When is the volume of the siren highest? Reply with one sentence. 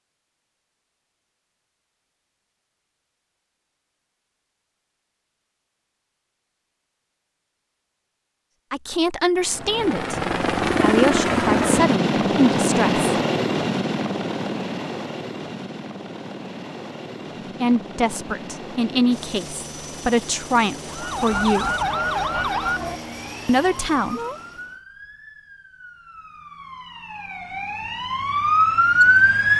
The loudest moment of the siren is at 29 seconds.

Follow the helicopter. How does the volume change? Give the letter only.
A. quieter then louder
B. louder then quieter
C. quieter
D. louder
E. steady
C.